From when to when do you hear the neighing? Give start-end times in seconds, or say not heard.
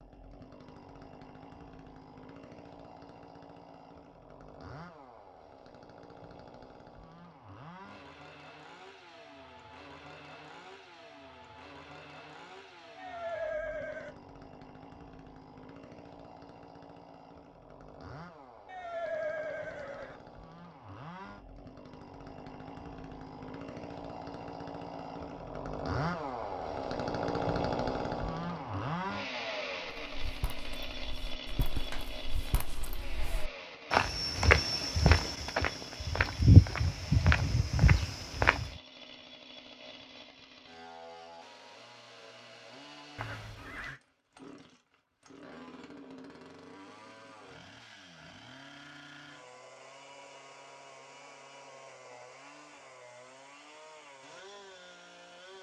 12.9-14.2, 18.6-20.2, 43.1-44.0.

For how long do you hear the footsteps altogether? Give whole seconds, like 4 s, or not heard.
9 s.